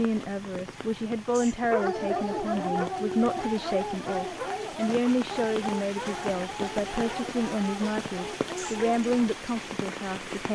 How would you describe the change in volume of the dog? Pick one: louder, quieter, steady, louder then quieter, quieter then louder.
quieter.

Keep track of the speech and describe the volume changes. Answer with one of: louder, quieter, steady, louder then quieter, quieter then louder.
steady.